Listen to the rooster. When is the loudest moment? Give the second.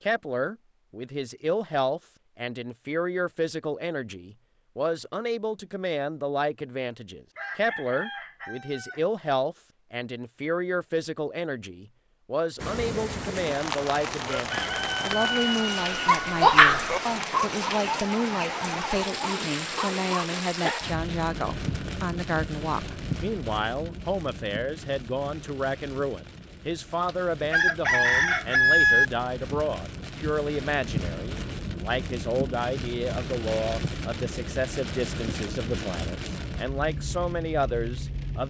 29 s.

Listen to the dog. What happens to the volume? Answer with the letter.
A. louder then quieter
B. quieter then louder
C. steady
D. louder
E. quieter
E.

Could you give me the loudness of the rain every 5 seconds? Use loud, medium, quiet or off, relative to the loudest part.
off, off, loud, loud, loud, medium, loud, loud.